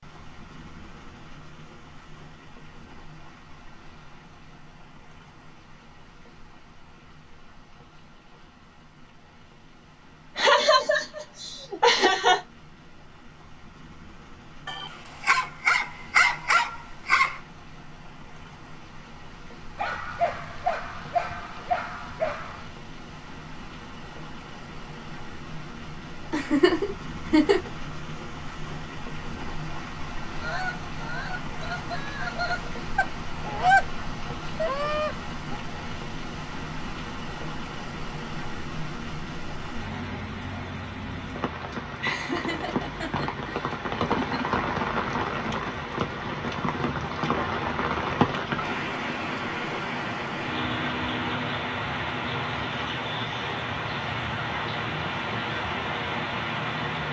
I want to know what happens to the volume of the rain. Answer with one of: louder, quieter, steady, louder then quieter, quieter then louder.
louder.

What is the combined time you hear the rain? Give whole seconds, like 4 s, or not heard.
57 s.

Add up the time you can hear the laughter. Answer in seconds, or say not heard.
6 s.